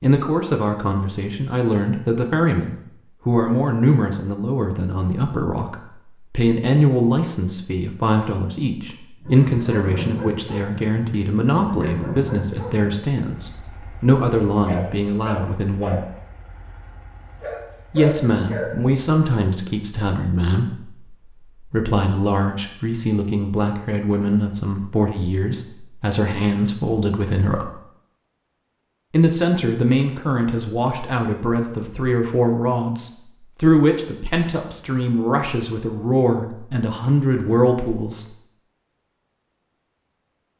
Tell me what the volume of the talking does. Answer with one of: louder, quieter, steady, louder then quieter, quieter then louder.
steady.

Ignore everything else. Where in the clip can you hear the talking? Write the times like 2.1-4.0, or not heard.
0.0-16.0, 17.9-27.6, 29.1-38.3.